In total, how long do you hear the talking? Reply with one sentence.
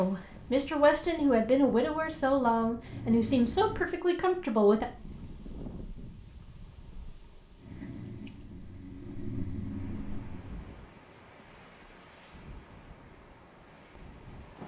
You can hear the talking for 5 seconds altogether.